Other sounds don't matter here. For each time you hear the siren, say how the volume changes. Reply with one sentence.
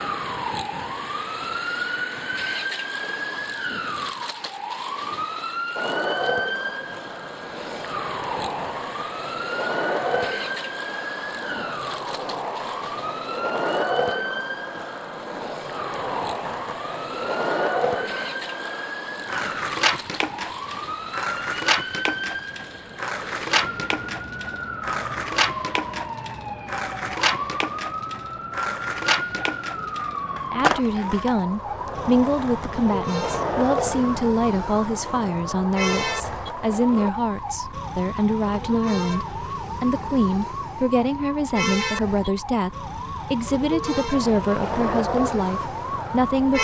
The siren can be heard from 0.0 to 46.5 s, at a steady volume.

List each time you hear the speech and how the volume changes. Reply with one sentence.
You can hear the speech from 30.5 to 46.5 s, at a steady volume.